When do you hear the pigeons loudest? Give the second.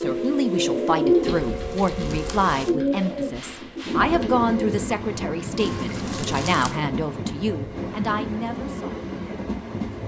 1 s.